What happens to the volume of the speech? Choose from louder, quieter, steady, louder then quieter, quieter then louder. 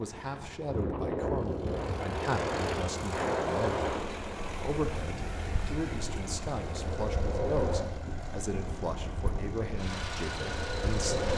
steady.